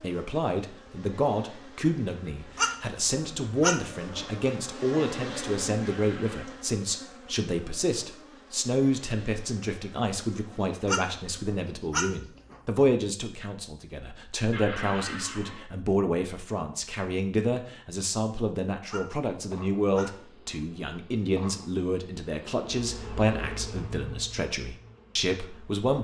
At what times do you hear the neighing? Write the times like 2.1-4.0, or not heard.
5.8-6.5, 14.5-15.7.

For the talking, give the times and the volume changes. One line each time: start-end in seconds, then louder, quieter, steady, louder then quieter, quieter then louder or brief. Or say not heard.
0.0-25.9 steady.